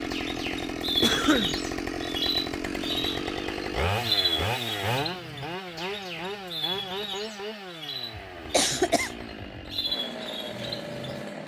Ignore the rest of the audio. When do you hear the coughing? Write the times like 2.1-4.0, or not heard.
1.0-1.6, 8.1-9.7.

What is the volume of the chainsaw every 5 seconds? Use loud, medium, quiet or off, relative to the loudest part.
loud, medium, medium.